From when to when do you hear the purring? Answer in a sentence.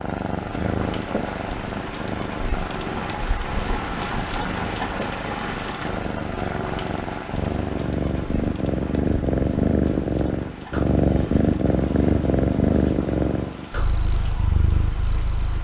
The purring can be heard from 0.0 to 15.6 s.